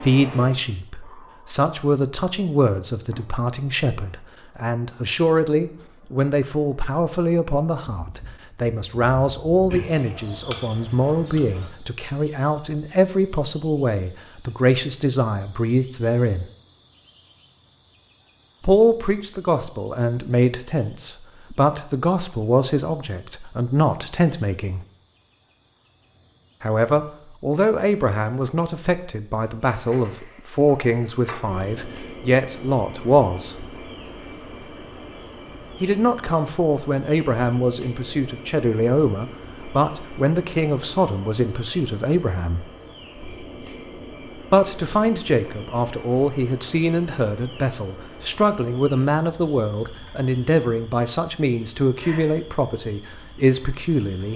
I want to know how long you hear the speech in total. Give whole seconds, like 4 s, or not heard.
46 s.